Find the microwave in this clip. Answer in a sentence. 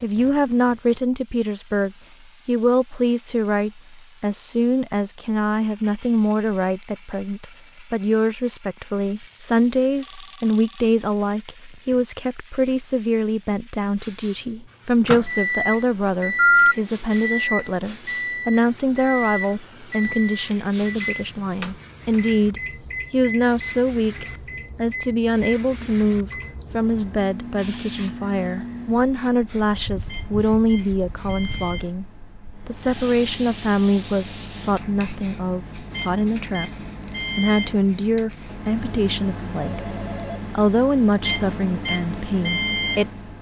You can hear the microwave from 15.1 to 43.3 s.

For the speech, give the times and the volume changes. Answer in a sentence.
You can hear the speech from 0.0 to 36.7 s, at a steady volume; briefly from 37.4 to 39.9 s; and briefly from 40.5 to 43.3 s.